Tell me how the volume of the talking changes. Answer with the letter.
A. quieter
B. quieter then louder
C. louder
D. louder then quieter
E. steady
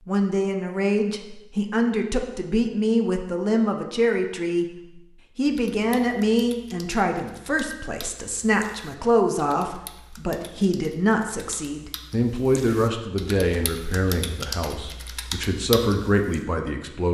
E.